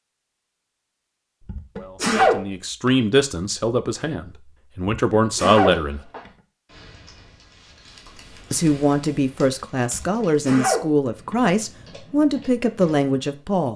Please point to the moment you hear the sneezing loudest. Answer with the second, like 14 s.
2 s.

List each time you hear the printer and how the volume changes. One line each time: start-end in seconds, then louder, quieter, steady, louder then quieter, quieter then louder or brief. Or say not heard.
not heard.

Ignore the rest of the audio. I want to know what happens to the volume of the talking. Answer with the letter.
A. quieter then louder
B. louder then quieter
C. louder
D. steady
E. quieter
D.